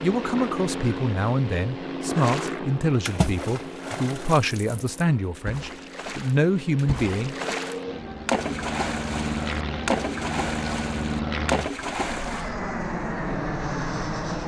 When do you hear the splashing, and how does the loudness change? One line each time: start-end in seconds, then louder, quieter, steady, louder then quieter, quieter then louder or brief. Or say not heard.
2.1-12.5 quieter then louder.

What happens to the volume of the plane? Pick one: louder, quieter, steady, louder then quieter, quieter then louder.
quieter then louder.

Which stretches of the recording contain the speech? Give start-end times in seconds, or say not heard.
0.0-7.5.